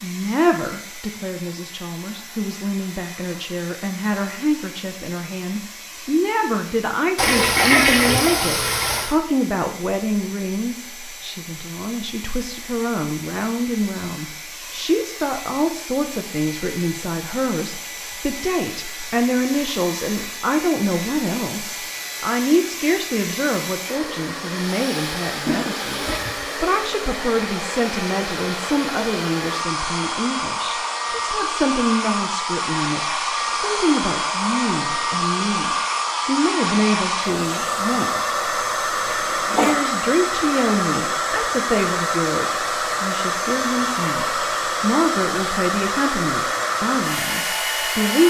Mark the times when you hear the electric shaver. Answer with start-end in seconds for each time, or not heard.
not heard.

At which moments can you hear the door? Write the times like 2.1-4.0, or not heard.
not heard.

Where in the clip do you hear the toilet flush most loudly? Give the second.
8 s.